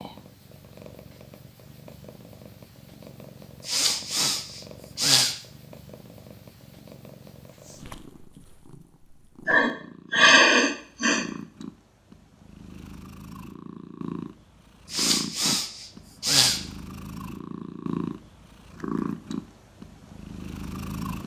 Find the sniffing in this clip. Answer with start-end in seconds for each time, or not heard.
3.6-5.3, 9.4-11.2, 14.9-16.6.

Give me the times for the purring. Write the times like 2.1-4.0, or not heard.
0.0-21.2.